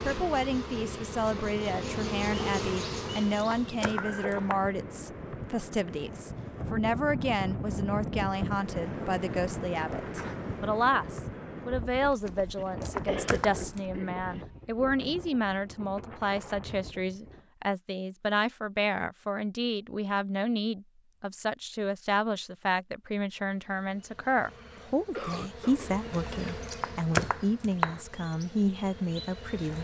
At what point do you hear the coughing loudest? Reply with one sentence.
The volume of the coughing peaks at 13 seconds.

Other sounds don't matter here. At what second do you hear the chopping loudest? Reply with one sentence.
The volume of the chopping peaks at 27 seconds.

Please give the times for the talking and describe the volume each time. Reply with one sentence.
You can hear the talking from 0.0 to 29.7 s, at a steady volume.